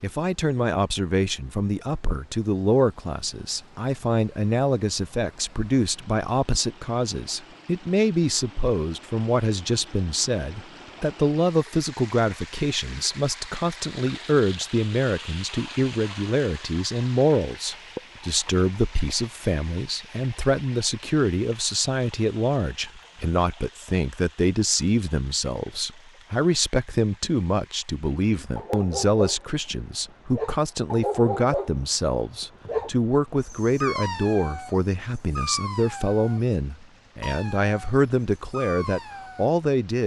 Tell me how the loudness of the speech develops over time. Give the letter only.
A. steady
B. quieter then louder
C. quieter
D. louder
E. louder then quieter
A.